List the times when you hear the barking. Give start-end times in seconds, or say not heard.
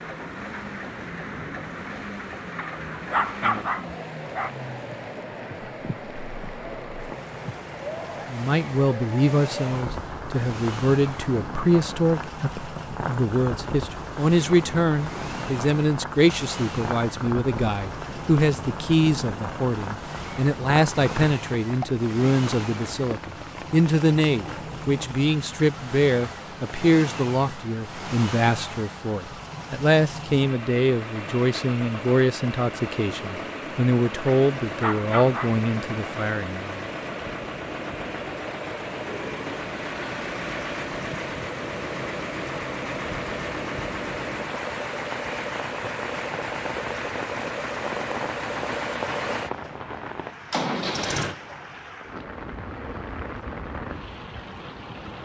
2.5-4.5, 34.2-36.1.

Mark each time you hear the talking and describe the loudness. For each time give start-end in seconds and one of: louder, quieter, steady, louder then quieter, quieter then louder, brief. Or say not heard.
8.2-36.8 steady.